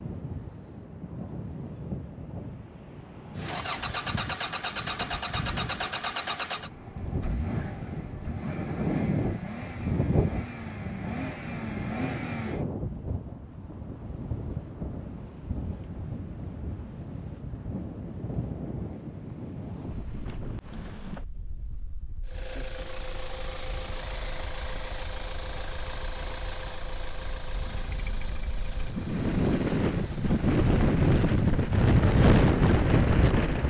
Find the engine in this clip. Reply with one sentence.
You can hear the engine from 3.4 to 12.7 s and from 22.2 to 33.6 s.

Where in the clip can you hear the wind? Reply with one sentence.
The wind can be heard from 0.0 to 33.6 s.